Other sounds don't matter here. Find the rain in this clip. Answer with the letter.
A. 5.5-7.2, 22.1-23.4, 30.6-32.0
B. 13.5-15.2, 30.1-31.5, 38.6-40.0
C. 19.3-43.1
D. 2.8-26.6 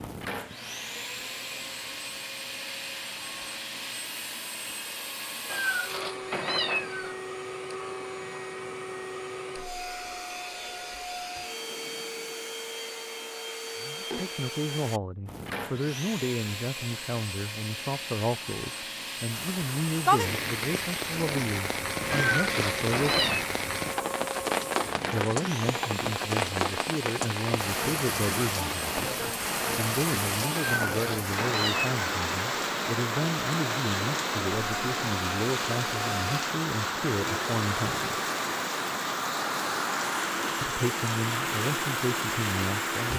C.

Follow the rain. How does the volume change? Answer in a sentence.
The volume of the rain stays about the same.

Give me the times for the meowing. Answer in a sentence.
The meowing can be heard from 5.5 to 7.2 s, from 22.1 to 23.4 s and from 30.6 to 32.0 s.